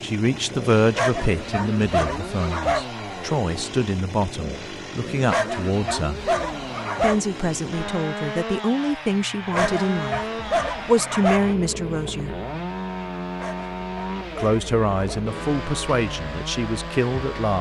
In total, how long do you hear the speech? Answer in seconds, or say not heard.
14 s.